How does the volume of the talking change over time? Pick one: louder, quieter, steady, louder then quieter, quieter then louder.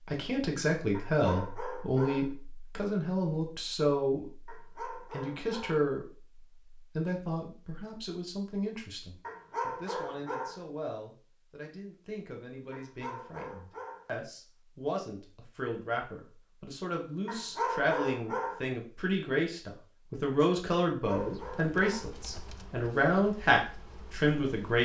quieter then louder.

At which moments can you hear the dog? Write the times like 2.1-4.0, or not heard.
0.9-2.3, 4.5-5.8, 9.2-10.6, 12.7-14.1, 17.2-18.6, 20.9-22.1.